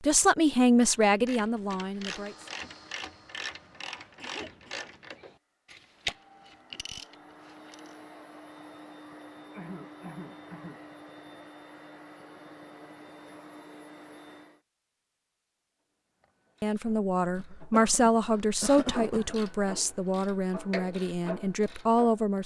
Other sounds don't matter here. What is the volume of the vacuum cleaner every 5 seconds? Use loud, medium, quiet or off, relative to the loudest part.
medium, loud, loud, off, off.